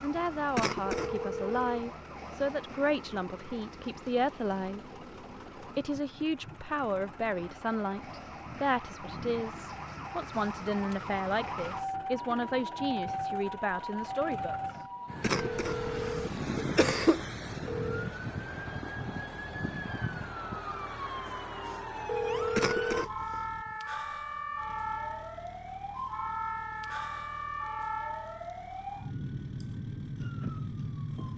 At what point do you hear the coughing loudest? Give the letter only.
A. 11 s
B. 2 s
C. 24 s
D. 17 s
D.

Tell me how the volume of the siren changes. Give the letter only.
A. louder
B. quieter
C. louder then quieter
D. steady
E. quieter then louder
A.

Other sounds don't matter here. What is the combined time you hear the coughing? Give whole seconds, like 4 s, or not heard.
3 s.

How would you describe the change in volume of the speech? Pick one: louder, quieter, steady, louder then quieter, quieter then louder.
steady.